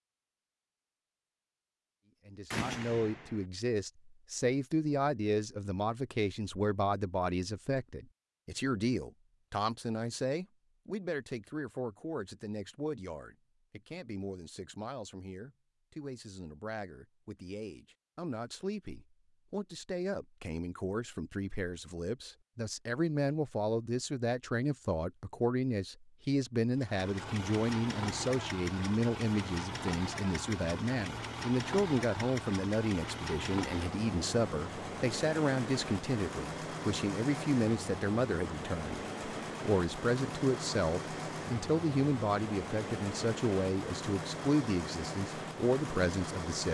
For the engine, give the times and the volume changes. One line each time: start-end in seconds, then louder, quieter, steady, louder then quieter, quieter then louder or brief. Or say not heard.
26.8-46.6 steady.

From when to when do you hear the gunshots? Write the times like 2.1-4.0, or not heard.
2.5-3.5.